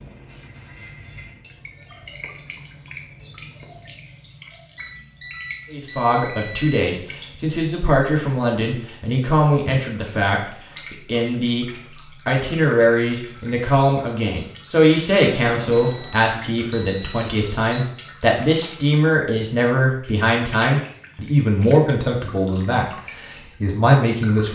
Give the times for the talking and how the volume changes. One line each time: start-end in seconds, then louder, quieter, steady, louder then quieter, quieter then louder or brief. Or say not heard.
5.7-24.5 steady.